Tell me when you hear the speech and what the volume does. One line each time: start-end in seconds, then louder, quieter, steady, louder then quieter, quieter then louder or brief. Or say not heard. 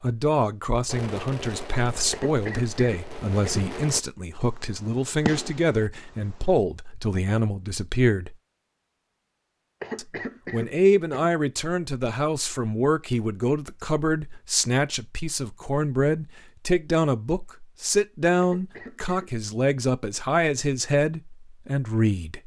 0.0-8.3 steady
9.9-22.4 steady.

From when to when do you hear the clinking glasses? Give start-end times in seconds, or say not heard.
not heard.